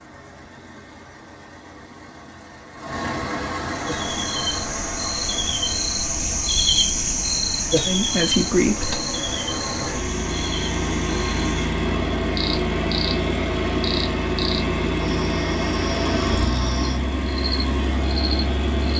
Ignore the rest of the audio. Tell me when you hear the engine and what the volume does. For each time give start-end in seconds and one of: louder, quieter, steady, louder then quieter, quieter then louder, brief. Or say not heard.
0.0-18.9 louder.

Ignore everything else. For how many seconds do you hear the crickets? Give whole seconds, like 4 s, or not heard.
15 s.